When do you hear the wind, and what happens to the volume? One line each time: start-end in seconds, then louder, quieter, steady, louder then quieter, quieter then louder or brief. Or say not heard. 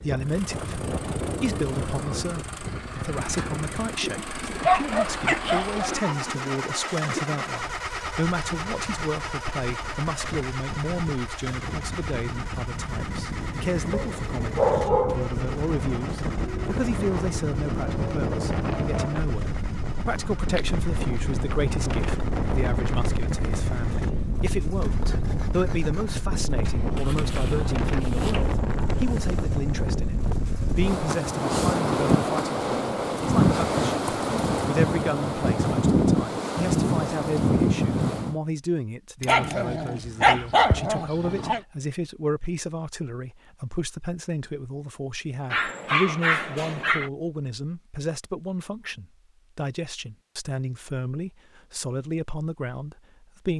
0.0-38.4 louder.